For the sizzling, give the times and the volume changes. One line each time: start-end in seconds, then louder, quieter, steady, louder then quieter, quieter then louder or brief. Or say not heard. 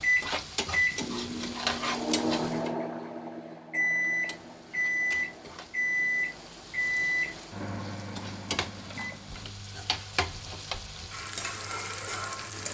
0.0-2.7 brief
4.0-12.6 louder.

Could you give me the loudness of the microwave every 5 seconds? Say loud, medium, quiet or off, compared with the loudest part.
loud, loud, quiet.